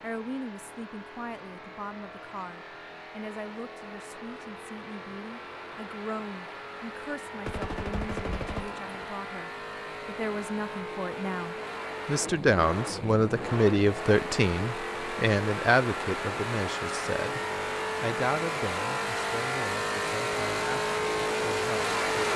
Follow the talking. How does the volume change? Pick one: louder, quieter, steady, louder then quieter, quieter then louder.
louder then quieter.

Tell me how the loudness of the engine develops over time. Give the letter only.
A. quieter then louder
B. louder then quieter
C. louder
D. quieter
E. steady
C.